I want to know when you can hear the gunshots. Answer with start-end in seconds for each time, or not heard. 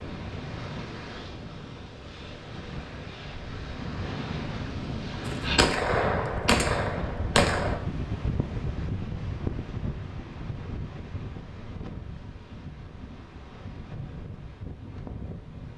5.2-7.8.